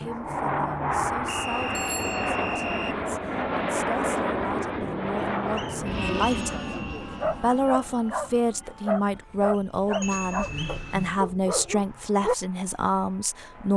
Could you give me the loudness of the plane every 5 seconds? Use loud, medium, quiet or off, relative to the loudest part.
loud, medium, quiet.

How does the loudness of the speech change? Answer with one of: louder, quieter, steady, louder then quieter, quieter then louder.
louder.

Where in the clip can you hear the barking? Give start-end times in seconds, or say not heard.
6.7-12.3.